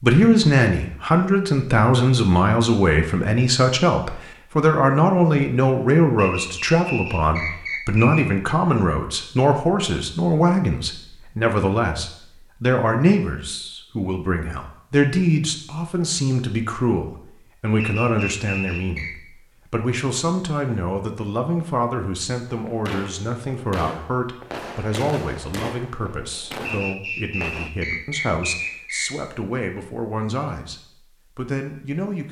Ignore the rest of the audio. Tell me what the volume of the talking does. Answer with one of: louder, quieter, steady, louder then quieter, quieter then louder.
quieter.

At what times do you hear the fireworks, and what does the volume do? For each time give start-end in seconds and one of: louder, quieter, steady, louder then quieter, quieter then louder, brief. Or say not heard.
22.5-27.7 steady.